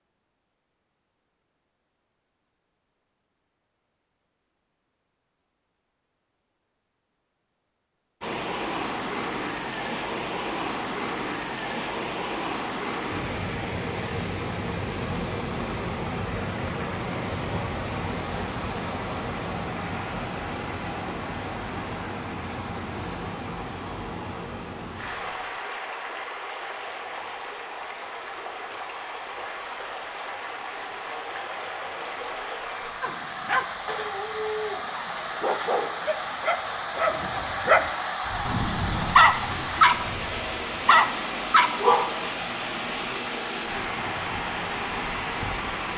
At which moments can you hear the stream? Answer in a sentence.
The stream can be heard from 8.2 to 45.9 s.